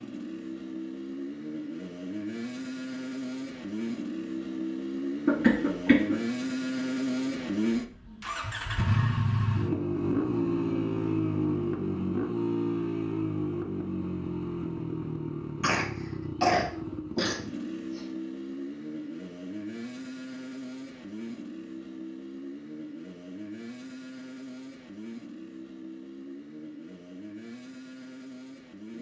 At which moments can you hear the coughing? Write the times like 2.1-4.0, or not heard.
5.2-6.2, 15.6-18.1.